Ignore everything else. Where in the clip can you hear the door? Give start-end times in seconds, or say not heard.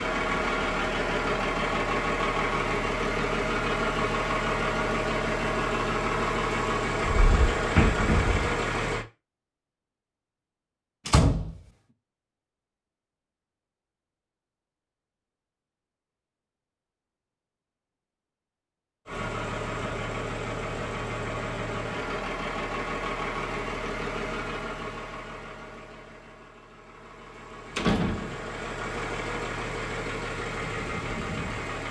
7.2-8.6, 11.1-11.6, 27.8-28.4.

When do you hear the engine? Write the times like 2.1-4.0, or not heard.
0.0-9.1, 19.1-31.8.